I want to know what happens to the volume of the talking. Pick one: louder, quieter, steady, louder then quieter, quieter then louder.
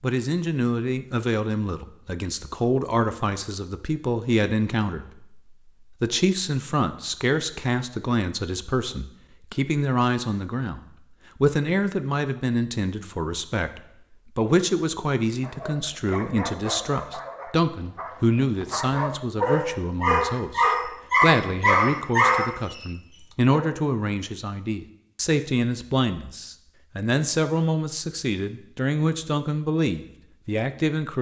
steady.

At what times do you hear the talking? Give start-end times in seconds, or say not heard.
0.0-5.4, 6.0-10.8, 11.4-31.1.